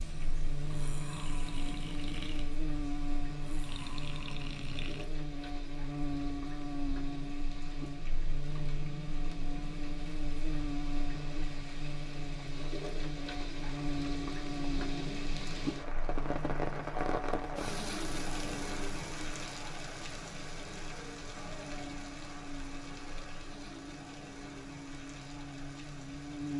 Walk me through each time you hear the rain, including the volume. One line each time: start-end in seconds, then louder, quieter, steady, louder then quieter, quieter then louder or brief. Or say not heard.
0.0-26.5 louder then quieter.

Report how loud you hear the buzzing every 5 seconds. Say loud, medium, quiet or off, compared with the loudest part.
loud, loud, loud, medium, medium, loud.